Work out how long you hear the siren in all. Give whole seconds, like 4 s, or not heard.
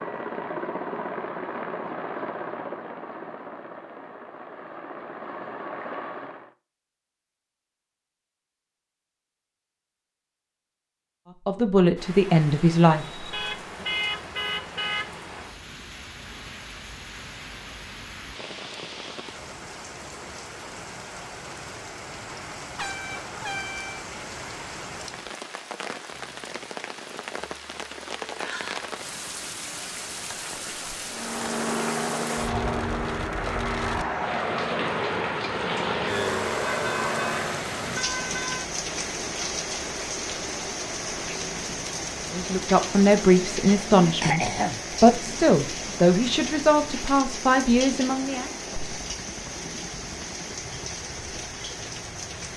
not heard.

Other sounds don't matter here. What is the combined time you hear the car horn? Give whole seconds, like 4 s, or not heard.
5 s.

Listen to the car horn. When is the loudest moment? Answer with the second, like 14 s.
14 s.